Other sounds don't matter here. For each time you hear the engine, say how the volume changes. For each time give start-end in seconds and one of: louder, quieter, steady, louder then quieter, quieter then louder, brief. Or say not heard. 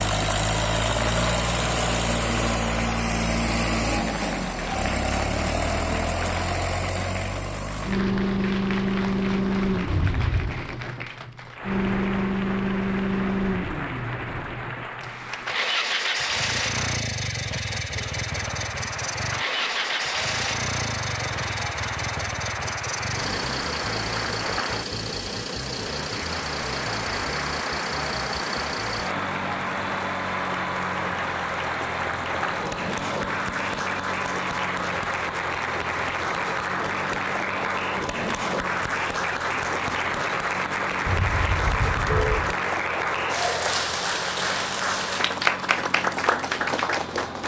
0.0-47.4 quieter.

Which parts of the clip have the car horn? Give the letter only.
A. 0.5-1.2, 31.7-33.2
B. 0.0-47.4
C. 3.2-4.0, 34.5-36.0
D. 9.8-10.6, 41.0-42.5
D.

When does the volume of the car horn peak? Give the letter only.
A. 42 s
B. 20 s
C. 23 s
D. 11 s
A.